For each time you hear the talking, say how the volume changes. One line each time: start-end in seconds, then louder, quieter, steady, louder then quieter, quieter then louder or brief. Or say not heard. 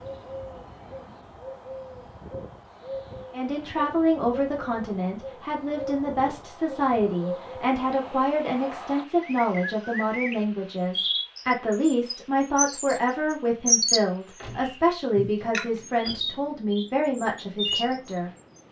3.3-18.3 steady.